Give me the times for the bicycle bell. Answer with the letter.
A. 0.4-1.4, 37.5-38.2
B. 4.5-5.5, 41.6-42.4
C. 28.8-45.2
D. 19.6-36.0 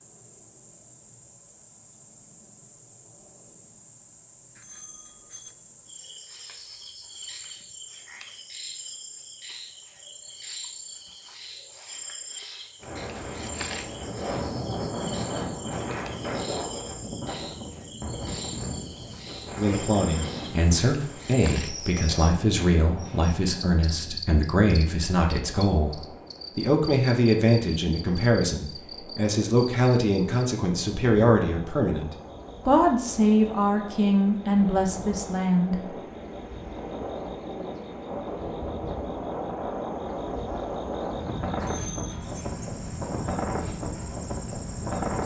B.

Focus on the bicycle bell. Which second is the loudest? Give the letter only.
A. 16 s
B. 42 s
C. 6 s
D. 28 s
B.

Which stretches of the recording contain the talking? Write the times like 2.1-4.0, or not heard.
19.6-36.0.